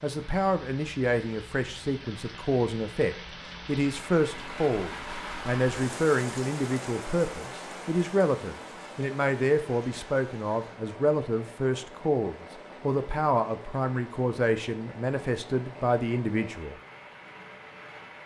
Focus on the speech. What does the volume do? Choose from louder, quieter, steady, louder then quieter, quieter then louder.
steady.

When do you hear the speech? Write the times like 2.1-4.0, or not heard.
0.0-16.8.